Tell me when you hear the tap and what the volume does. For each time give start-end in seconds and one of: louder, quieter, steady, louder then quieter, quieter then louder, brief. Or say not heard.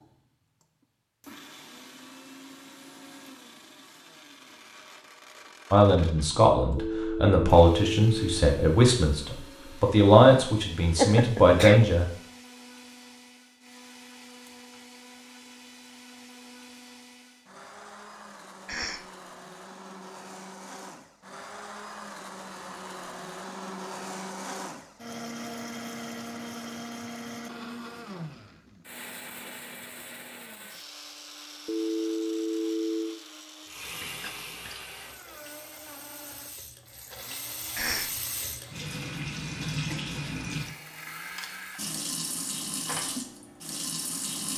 33.6-44.5 louder.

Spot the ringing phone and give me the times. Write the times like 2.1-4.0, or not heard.
6.8-8.5, 31.6-33.2.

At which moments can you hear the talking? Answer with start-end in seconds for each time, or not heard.
5.7-12.1.